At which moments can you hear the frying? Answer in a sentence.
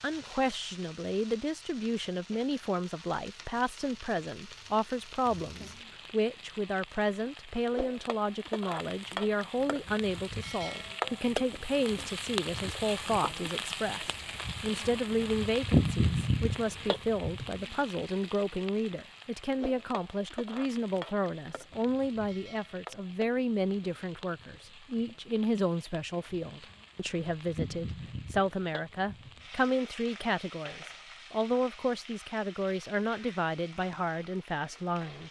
The frying can be heard from 0.0 to 35.2 s.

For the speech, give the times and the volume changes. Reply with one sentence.
You can hear the speech from 0.0 to 35.2 s, at a steady volume.